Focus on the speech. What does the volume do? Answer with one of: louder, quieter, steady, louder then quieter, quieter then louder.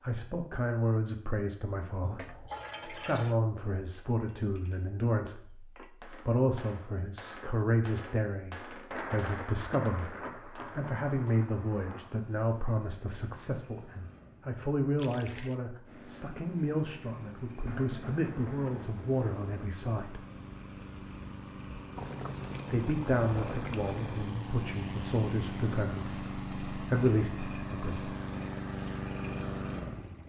steady.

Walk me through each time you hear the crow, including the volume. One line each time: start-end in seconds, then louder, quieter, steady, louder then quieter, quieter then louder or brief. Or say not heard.
not heard.